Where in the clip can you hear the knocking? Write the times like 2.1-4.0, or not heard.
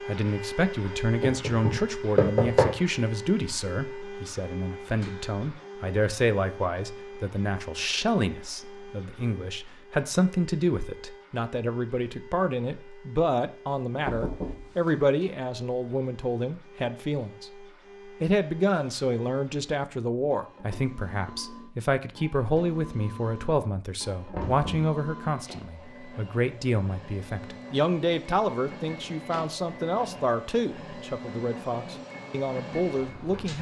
1.2-2.7, 14.1-15.2, 24.3-24.9.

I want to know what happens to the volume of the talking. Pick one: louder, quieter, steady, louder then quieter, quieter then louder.
steady.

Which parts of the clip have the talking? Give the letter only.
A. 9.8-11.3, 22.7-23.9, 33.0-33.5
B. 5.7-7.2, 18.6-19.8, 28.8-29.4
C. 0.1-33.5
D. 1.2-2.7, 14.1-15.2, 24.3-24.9
C.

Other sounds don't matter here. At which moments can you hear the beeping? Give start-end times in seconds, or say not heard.
not heard.